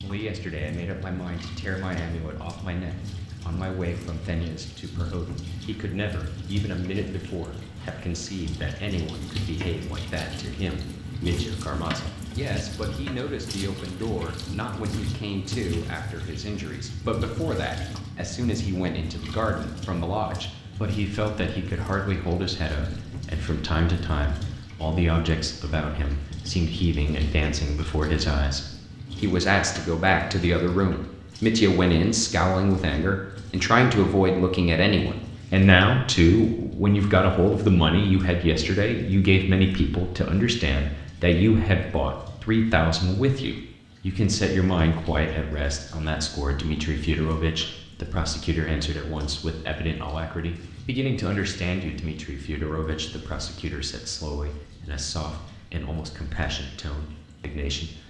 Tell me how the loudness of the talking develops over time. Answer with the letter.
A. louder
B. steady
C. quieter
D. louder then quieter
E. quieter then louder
D.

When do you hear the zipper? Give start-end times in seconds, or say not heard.
not heard.